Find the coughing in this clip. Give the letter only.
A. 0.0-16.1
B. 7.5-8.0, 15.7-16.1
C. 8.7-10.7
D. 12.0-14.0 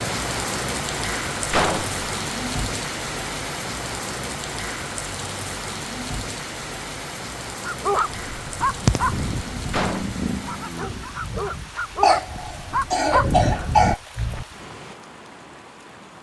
D.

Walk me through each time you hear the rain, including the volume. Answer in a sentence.
You can hear the rain from 0.0 to 16.1 s, getting quieter.